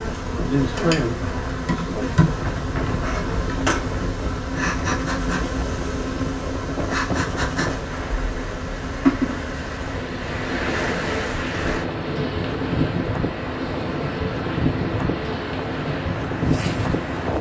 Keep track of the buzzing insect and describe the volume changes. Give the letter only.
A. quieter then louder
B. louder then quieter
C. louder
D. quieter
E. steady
D.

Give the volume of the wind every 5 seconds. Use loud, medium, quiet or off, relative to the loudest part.
medium, medium, loud, loud.